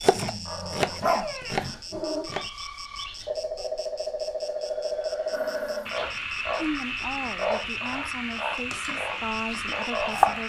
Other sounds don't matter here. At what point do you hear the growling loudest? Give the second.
1 s.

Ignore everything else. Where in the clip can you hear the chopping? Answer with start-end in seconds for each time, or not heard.
0.0-2.5, 8.8-10.4.